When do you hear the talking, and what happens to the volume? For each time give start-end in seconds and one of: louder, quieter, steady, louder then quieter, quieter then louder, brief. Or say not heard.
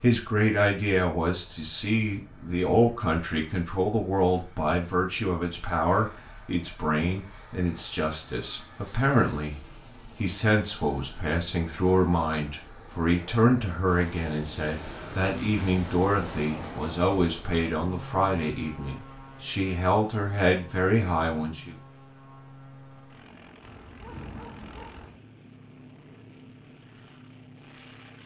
0.0-21.8 steady.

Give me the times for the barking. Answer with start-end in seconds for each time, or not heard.
23.6-25.2.